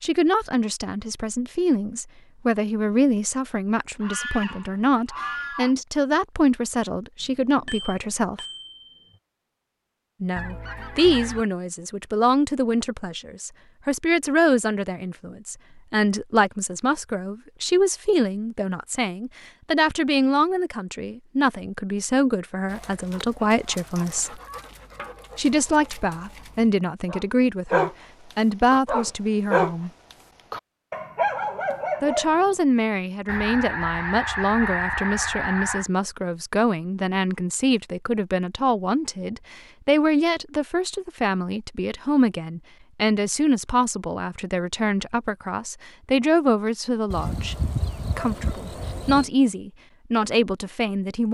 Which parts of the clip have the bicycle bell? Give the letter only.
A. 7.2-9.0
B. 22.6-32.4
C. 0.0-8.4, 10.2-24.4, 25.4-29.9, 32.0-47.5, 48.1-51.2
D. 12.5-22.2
A.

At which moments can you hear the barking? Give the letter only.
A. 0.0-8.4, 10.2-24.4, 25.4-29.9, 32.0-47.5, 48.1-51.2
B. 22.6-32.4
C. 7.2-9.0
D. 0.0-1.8
B.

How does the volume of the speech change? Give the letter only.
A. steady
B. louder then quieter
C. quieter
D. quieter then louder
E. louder
A.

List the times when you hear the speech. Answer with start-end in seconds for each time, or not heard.
0.0-8.4, 10.2-24.4, 25.4-29.9, 32.0-47.5, 48.1-51.2.